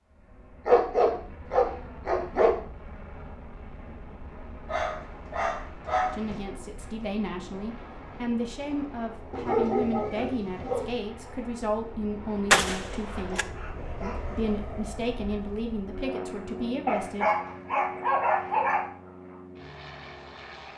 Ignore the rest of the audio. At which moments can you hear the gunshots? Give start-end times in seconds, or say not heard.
12.5-13.4.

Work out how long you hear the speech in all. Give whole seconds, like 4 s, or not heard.
11 s.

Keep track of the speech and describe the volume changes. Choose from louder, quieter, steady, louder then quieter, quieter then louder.
steady.